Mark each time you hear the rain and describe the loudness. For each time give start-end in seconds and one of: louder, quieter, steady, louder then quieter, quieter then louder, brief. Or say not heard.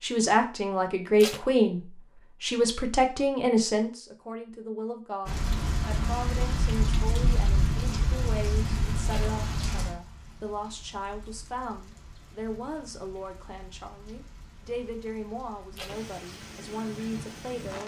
5.2-17.8 quieter then louder.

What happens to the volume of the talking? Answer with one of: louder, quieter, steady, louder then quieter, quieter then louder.
quieter.